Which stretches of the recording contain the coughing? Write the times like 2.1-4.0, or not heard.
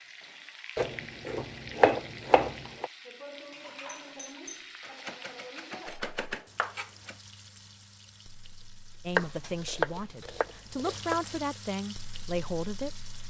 not heard.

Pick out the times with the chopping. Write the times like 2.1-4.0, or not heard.
0.8-2.9, 4.8-7.2, 9.2-11.3.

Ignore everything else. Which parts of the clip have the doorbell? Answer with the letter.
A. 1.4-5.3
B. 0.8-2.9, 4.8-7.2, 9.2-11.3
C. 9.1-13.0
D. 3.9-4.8
D.